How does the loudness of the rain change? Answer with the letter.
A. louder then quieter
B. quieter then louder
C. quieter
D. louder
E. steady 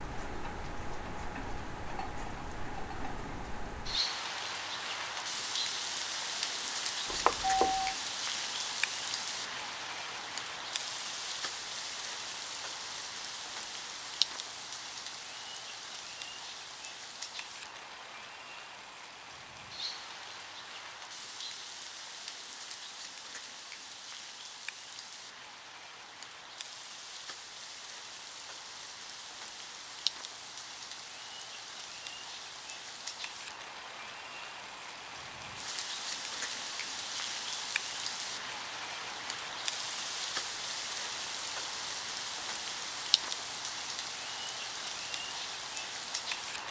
B.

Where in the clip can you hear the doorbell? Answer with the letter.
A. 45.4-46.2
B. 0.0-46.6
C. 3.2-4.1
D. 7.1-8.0
D.